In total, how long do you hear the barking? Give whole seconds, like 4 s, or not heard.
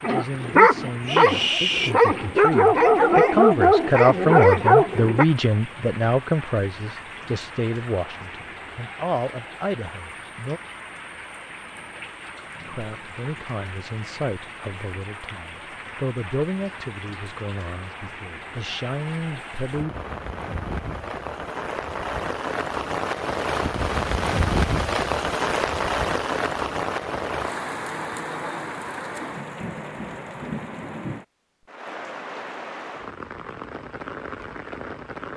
5 s.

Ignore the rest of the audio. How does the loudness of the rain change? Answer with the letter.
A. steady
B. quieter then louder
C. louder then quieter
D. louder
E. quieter
C.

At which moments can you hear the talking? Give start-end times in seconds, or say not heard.
0.0-10.6, 12.7-19.9.